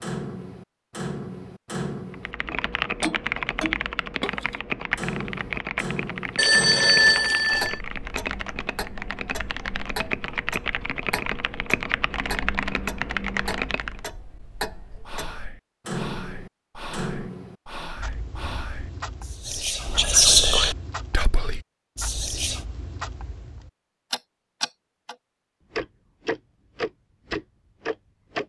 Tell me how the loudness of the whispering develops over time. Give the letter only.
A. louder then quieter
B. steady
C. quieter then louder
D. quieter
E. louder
A.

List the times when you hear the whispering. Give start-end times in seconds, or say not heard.
15.1-22.6.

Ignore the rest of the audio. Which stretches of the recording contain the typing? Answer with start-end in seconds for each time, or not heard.
2.1-14.0.